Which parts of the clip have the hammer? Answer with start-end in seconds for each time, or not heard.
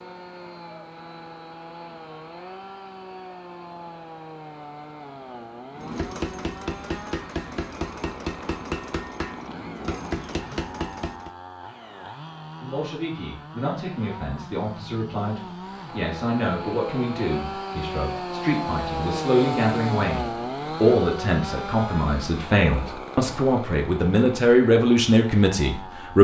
5.7-11.3.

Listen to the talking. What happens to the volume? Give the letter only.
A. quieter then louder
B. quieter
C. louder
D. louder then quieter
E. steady
C.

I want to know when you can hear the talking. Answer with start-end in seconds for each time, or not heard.
12.6-26.1.